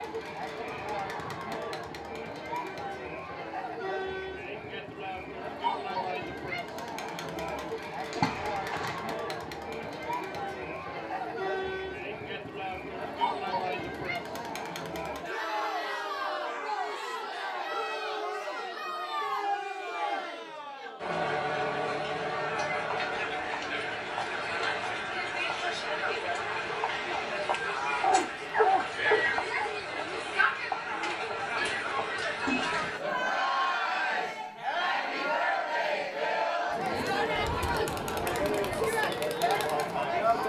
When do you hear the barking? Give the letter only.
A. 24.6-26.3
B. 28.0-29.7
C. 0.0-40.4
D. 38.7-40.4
B.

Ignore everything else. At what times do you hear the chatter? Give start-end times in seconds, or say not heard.
0.0-40.4.